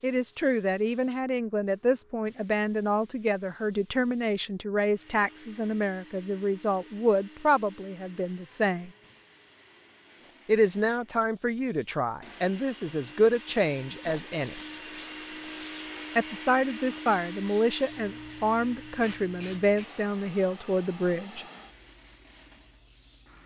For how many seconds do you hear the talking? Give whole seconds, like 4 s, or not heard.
18 s.